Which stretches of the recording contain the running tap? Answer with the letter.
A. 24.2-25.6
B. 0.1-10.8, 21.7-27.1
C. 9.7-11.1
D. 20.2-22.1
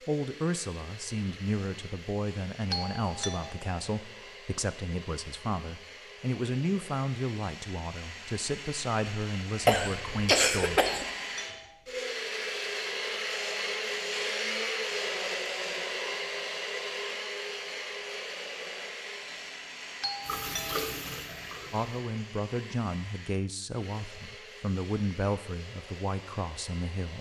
D.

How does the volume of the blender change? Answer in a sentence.
The loudness of the blender goes up, then down.